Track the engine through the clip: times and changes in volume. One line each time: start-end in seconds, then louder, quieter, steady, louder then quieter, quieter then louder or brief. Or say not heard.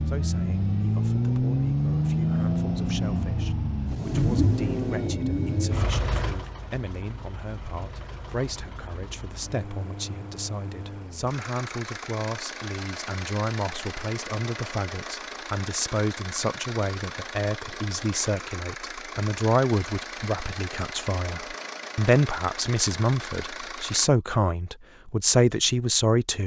0.0-24.1 quieter.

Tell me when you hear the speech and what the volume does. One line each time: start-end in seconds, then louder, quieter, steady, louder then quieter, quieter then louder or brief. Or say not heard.
0.0-26.4 louder.